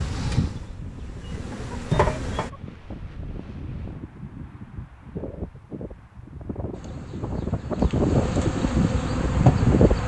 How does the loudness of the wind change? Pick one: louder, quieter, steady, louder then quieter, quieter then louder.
louder.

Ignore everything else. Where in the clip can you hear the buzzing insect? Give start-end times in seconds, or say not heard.
0.0-2.5, 6.7-10.0.